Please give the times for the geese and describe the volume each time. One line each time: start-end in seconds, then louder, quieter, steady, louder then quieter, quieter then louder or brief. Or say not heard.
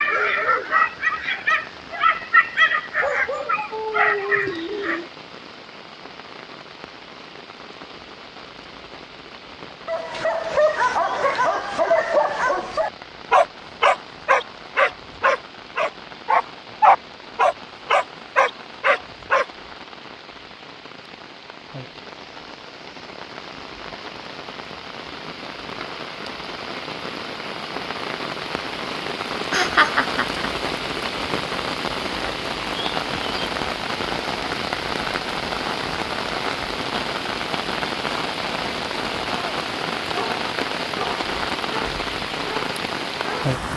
not heard.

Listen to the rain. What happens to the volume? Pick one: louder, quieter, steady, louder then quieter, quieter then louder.
louder.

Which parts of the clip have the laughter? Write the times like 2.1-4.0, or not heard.
29.5-30.4.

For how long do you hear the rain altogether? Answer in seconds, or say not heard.
44 s.